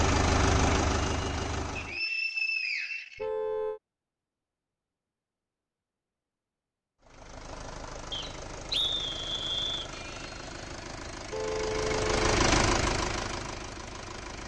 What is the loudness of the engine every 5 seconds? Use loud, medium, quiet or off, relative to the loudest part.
loud, quiet, loud.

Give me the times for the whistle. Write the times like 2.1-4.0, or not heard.
1.8-3.2, 8.1-9.9.